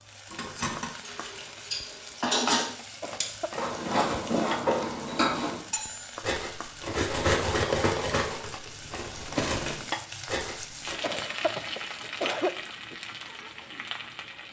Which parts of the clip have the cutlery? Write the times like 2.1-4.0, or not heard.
0.3-10.9.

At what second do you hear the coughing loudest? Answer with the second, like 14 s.
12 s.